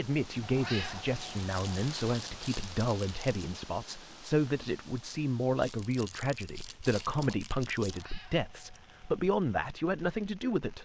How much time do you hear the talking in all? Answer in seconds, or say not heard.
11 s.